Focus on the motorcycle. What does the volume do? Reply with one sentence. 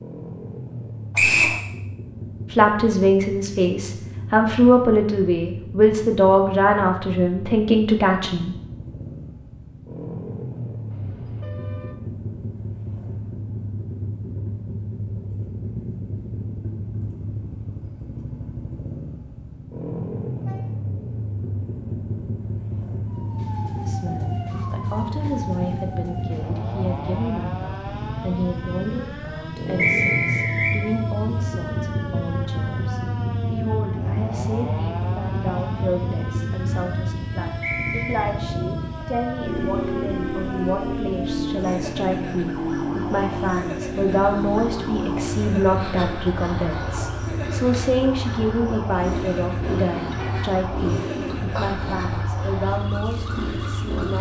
The volume of the motorcycle goes up.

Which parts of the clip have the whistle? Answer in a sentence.
The whistle can be heard from 1.1 to 1.6 s, from 29.8 to 30.8 s and from 37.6 to 38.2 s.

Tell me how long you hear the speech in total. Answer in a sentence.
You can hear the speech for 36 seconds altogether.